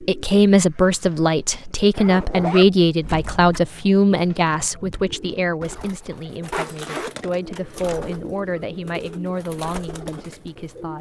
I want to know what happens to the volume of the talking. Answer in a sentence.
The loudness of the talking goes down.